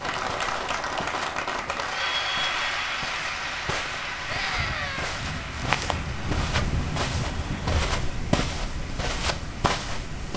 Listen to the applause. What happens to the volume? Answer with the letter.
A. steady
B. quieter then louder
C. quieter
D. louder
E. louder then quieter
C.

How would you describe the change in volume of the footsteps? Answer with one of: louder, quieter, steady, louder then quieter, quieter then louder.
louder.